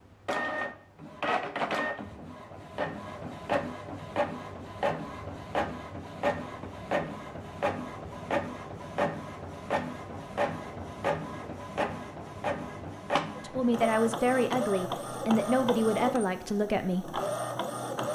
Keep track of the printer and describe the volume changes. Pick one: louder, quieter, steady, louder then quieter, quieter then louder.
steady.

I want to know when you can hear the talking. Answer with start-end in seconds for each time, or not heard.
13.3-17.2.